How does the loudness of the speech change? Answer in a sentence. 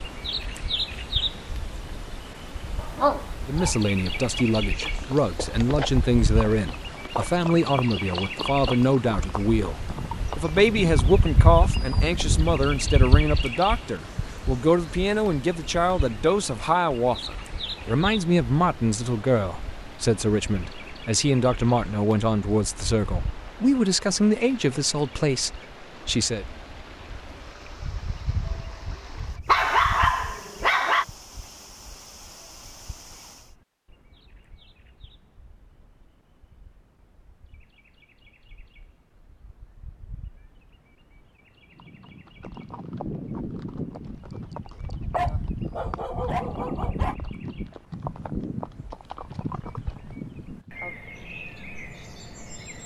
The loudness of the speech stays about the same.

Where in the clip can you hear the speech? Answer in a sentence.
The speech can be heard from 3.4 to 26.4 s.